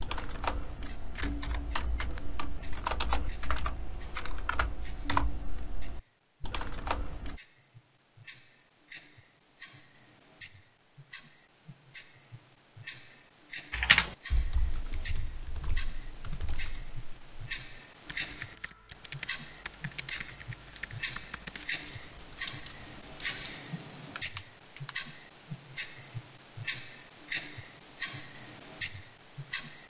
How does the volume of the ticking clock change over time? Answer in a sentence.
The volume of the ticking clock goes up.